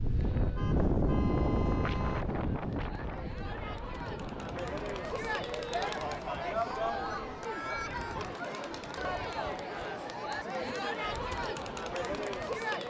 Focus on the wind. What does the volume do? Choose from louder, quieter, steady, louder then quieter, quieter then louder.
quieter.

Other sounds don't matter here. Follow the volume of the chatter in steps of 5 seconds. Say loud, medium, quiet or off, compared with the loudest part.
medium, loud, loud.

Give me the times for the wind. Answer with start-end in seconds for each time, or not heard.
0.0-8.4.